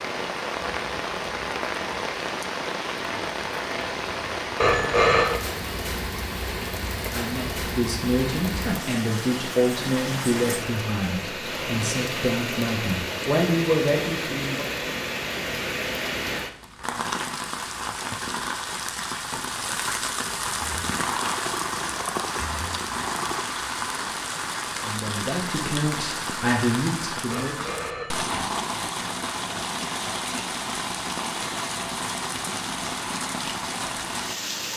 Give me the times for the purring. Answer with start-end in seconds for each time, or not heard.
20.6-23.4.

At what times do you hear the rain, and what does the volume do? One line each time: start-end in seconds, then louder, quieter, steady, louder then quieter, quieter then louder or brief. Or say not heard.
0.0-34.7 steady.